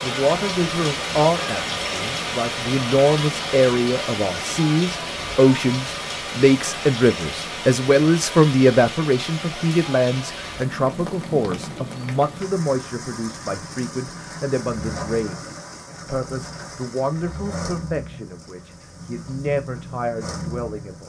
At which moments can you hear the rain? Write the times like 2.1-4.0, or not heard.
0.0-21.0.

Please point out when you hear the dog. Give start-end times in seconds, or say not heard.
not heard.